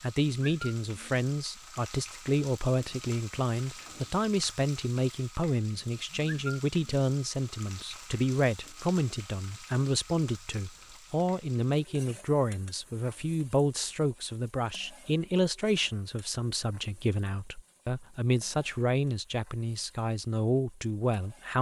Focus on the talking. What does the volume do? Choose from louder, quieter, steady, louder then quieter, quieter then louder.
steady.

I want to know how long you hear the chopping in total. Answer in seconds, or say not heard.
not heard.